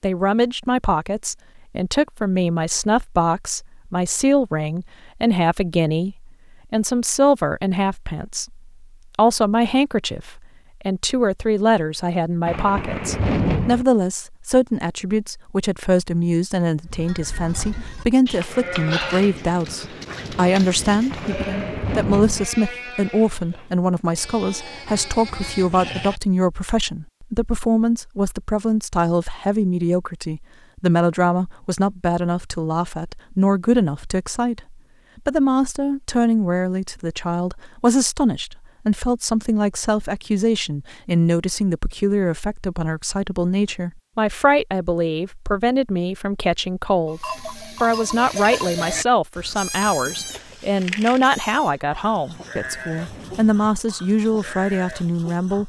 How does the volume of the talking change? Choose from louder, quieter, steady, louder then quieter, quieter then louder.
steady.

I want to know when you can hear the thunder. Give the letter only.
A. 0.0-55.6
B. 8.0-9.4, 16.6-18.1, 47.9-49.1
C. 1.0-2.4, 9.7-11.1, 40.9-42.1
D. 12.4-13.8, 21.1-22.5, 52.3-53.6
D.